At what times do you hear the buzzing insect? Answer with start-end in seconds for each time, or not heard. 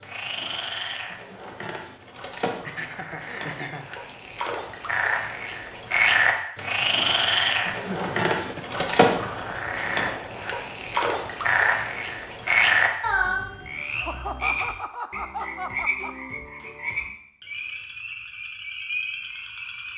not heard.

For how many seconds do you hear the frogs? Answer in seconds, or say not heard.
20 s.